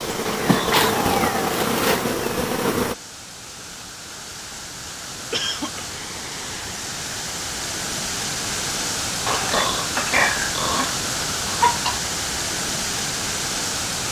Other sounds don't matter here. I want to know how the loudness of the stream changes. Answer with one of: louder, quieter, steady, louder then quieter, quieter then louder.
louder.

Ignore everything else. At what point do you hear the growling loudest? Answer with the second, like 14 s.
10 s.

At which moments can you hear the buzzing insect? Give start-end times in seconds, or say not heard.
0.0-3.0.